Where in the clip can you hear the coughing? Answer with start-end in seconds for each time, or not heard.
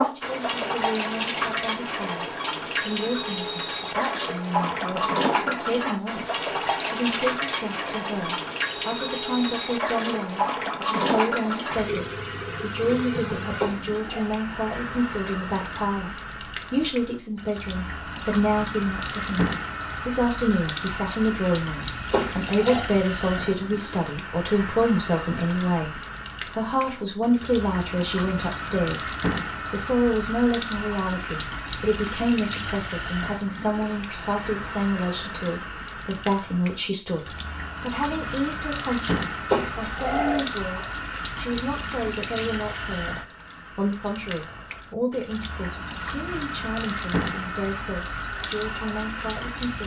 13.6-14.2, 22.1-22.9, 39.5-40.6.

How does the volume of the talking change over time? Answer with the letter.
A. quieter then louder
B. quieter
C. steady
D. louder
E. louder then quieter
E.